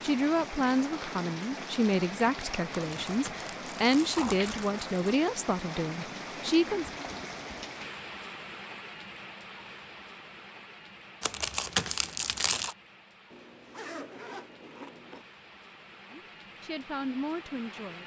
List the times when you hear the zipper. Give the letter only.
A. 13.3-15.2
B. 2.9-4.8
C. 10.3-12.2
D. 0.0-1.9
A.